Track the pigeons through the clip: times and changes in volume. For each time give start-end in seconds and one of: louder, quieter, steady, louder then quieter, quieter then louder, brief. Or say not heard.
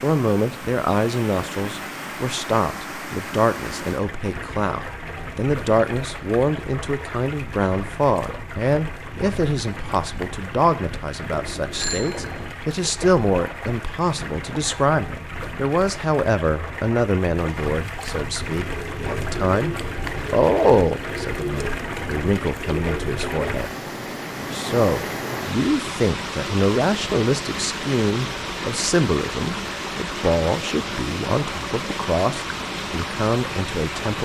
18.4-23.6 steady.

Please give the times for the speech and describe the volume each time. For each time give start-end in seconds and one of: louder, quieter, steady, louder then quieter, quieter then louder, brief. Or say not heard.
0.0-23.7 steady
24.5-34.2 steady.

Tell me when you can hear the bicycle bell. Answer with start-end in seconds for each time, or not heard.
11.3-12.6.